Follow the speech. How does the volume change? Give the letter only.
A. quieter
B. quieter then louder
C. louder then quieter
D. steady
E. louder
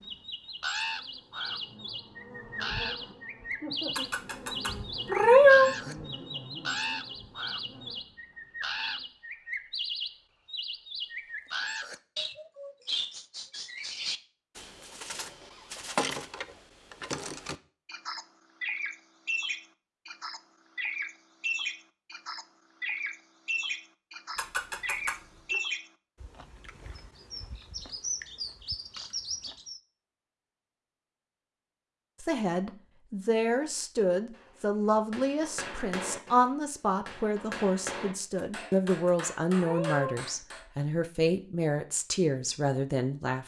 D.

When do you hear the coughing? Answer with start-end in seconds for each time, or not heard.
not heard.